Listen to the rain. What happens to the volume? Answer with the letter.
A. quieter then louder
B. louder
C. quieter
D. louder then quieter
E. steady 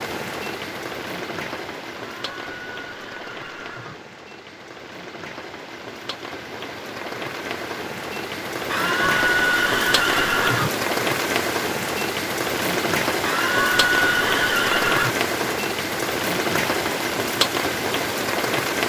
B.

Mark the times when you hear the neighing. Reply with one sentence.
You can hear the neighing from 1.9 to 4.0 s, from 8.7 to 10.7 s and from 13.2 to 15.2 s.